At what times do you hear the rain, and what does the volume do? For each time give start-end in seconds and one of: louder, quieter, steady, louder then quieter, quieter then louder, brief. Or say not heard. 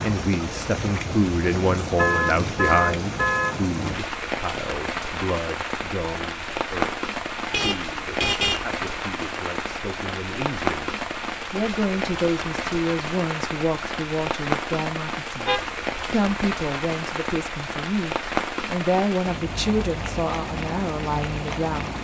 0.0-21.9 steady.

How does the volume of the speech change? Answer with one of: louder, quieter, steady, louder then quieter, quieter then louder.
quieter then louder.